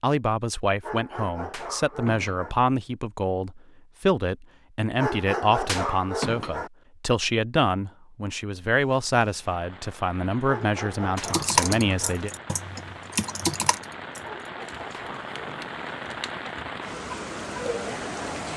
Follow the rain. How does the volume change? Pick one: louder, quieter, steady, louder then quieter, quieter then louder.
louder.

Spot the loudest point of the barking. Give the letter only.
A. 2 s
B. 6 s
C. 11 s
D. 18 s
B.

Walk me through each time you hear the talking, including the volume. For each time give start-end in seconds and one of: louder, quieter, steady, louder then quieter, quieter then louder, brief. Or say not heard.
0.0-12.3 steady.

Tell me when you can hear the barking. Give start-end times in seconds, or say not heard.
0.8-2.5, 5.0-6.7, 10.4-12.2, 14.2-15.7.